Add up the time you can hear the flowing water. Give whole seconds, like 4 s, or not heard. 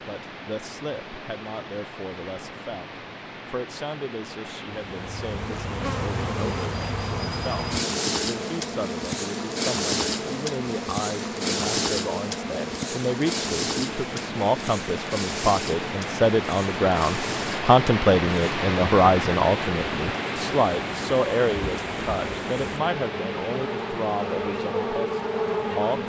26 s.